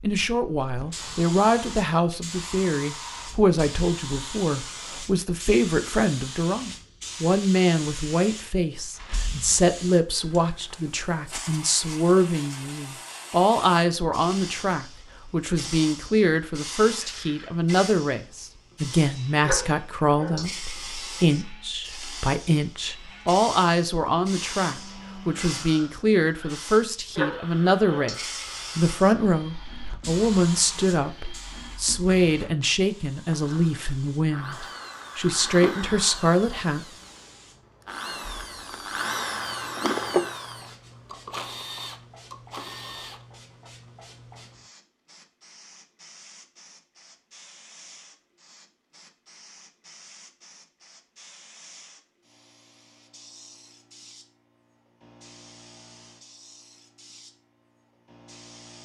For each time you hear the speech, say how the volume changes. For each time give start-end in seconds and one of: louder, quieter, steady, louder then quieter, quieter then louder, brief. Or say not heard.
0.0-36.9 steady.